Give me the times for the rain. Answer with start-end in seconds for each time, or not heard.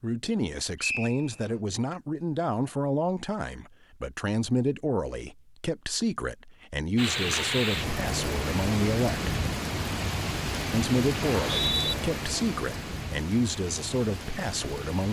7.0-15.0.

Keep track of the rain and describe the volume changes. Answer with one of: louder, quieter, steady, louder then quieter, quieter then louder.
quieter.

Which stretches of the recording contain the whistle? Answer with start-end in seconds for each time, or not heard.
0.8-1.6, 11.2-11.9.